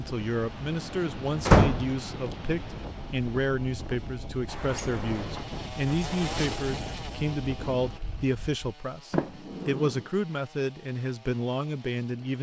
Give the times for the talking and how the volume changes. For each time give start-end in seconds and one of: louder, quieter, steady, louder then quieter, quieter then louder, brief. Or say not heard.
0.0-12.3 steady.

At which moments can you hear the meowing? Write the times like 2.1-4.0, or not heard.
not heard.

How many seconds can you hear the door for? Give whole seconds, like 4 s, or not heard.
4 s.